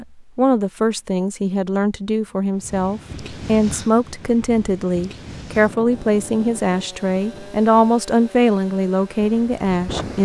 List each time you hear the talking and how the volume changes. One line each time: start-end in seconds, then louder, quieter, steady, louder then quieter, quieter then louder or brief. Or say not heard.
0.0-10.1 steady.